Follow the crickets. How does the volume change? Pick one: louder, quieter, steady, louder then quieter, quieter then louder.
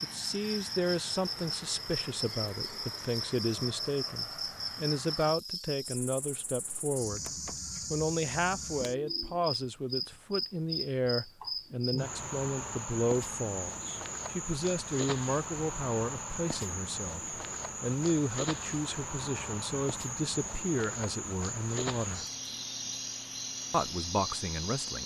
steady.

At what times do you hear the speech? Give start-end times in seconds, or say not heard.
0.0-7.2, 7.9-22.2, 23.7-25.0.